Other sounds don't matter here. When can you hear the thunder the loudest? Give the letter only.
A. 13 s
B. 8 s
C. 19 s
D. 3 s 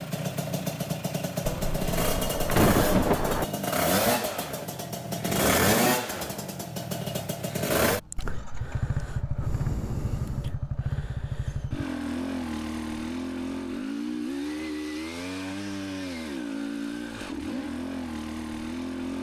D.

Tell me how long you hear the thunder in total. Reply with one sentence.
You can hear the thunder for 2 seconds altogether.